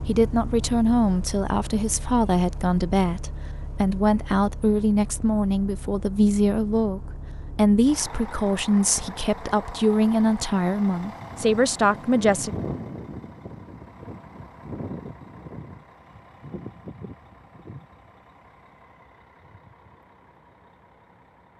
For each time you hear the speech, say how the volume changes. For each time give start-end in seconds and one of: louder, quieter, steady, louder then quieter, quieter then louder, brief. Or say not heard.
0.1-12.5 steady.